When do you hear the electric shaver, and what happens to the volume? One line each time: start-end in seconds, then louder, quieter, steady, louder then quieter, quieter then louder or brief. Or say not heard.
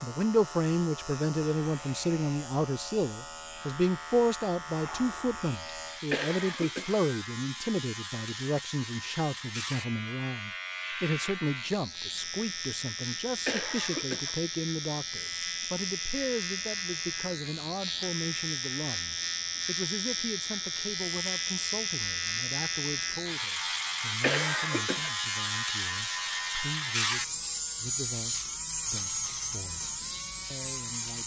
0.0-31.2 louder.